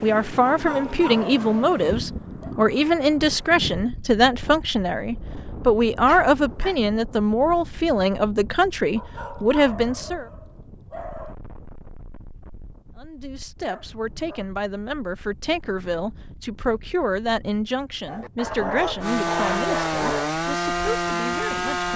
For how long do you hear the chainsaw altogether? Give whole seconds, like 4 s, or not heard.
3 s.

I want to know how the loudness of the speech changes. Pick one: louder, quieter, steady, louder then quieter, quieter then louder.
quieter.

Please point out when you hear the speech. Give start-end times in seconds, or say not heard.
0.0-10.2, 12.9-21.9.